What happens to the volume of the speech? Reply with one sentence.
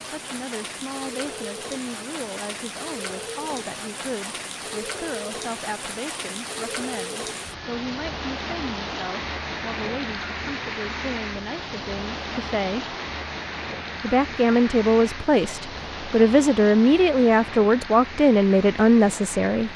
The loudness of the speech goes up.